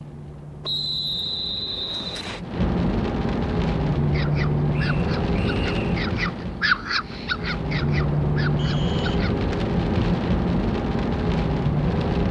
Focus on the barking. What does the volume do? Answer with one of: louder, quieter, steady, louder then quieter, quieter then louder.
louder then quieter.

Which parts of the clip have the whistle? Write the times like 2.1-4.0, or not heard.
0.6-2.4, 4.7-6.0, 8.6-9.2.